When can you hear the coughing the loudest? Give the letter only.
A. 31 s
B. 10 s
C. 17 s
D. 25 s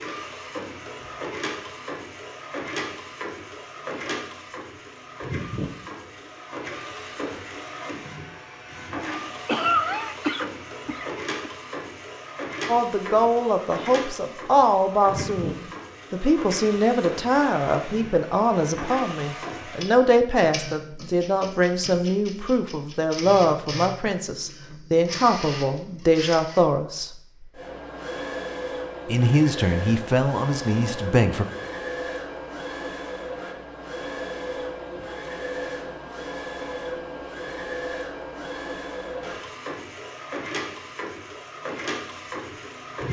B.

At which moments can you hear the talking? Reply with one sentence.
You can hear the talking from 12.7 to 27.1 s and from 29.1 to 31.4 s.